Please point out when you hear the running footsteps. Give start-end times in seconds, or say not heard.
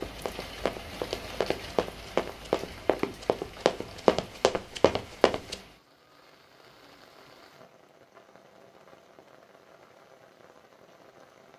0.0-5.5.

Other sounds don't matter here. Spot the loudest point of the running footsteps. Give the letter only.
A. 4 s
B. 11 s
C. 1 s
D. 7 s
A.